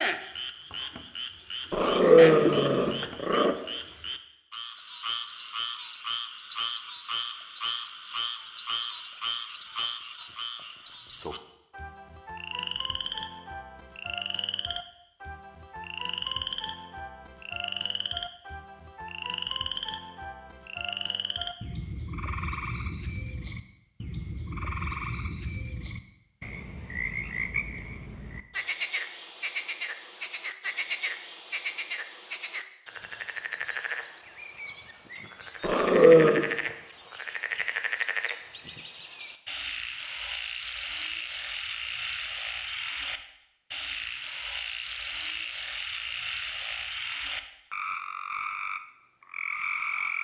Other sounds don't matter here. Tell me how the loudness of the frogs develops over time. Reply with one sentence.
The volume of the frogs stays about the same.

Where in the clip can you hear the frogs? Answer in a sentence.
The frogs can be heard from 0.0 to 50.1 s.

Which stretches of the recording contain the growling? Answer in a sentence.
You can hear the growling from 1.7 to 3.5 s and from 35.6 to 36.5 s.